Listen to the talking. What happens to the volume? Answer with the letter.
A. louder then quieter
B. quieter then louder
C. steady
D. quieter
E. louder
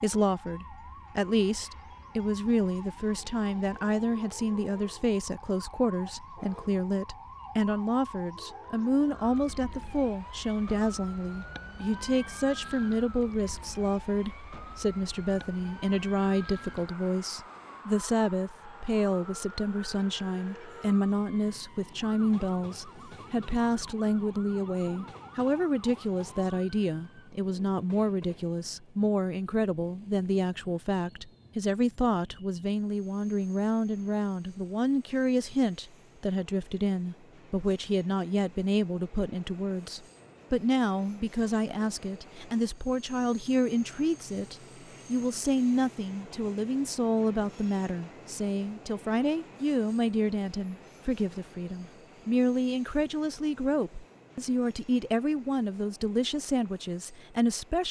C.